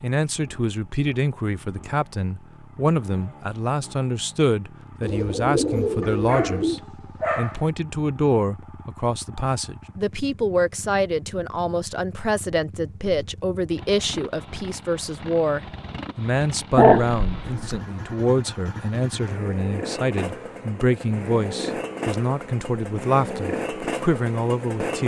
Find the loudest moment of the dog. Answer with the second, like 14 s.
17 s.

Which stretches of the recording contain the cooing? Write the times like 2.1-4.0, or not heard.
5.0-6.8.